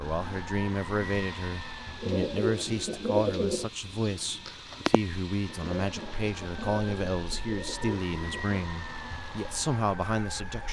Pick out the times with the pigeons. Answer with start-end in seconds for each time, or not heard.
1.9-8.6.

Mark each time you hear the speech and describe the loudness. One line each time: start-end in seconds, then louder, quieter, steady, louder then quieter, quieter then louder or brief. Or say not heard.
0.0-10.6 steady.